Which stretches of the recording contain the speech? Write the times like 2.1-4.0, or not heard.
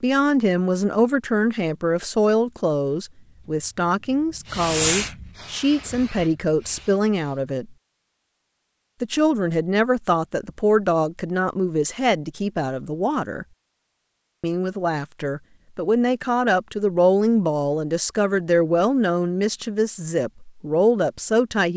0.0-7.8, 9.0-13.4, 14.4-21.7.